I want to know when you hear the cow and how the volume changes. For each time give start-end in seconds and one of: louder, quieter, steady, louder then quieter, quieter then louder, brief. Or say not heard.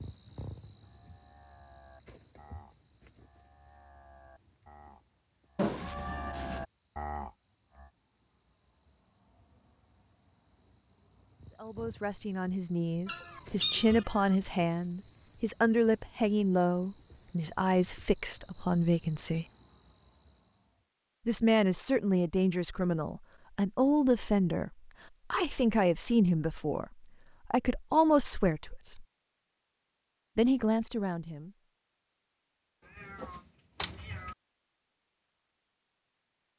0.8-7.9 louder.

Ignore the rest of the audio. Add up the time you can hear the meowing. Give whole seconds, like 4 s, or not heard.
4 s.